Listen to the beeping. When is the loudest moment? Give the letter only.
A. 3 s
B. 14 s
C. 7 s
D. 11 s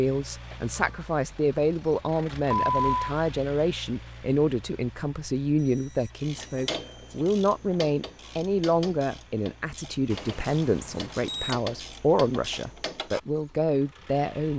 A.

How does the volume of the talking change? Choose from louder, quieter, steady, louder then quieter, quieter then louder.
steady.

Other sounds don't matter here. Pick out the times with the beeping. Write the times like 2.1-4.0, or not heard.
2.7-3.1, 5.5-6.8, 10.1-11.6.